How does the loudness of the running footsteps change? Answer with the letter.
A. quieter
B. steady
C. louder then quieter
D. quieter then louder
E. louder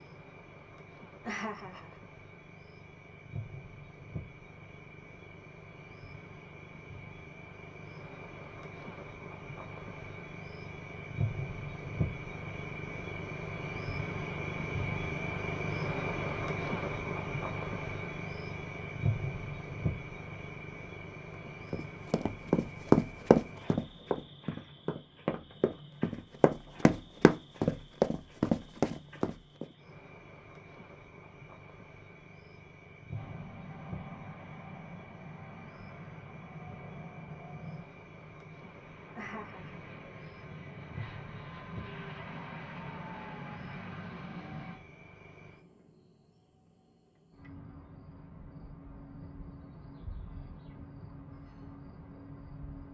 D.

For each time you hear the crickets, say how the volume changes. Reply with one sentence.
You can hear the crickets from 0.0 to 52.8 s, getting louder then quieter.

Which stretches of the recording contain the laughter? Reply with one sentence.
The laughter can be heard from 1.2 to 1.9 s and from 39.1 to 39.8 s.